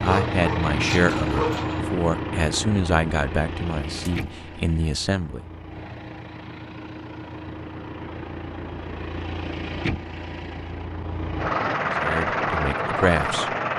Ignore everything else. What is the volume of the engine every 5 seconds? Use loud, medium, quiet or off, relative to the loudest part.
loud, medium, loud.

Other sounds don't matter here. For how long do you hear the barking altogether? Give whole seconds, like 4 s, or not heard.
2 s.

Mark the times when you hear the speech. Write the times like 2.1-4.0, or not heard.
0.0-5.5, 11.9-13.5.